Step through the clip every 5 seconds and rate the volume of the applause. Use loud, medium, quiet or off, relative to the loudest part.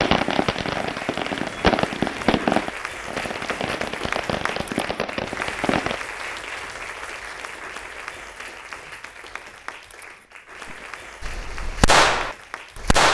loud, loud, medium.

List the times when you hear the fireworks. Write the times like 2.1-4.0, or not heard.
0.0-6.0, 10.7-13.0.